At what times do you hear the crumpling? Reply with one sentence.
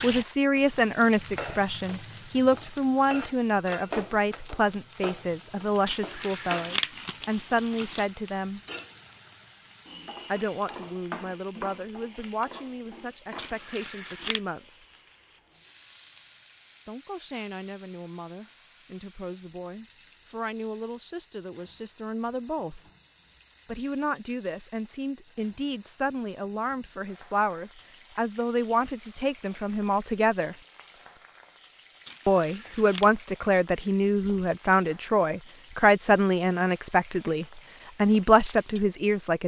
You can hear the crumpling from 5.8 to 8.1 s, from 13.3 to 14.4 s and from 32.0 to 33.1 s.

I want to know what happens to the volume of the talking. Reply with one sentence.
The volume of the talking goes down, then up.